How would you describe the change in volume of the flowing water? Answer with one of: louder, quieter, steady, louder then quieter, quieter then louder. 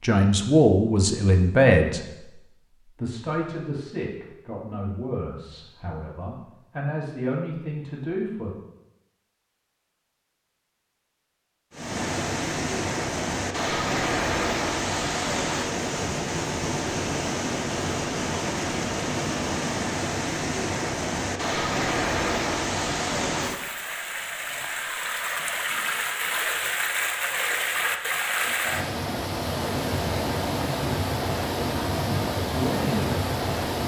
steady.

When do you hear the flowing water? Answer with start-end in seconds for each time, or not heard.
11.7-33.8.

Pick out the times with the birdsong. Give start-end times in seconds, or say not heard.
not heard.